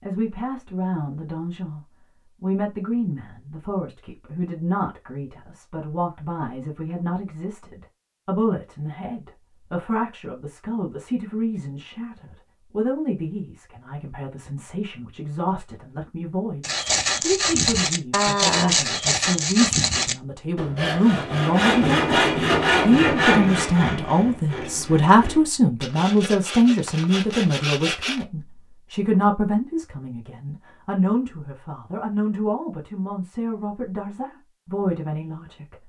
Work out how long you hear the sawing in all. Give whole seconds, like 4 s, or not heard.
12 s.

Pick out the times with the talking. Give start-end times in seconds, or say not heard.
0.0-35.8.